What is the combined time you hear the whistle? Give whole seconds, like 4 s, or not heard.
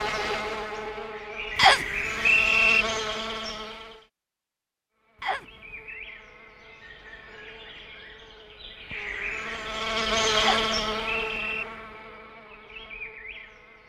3 s.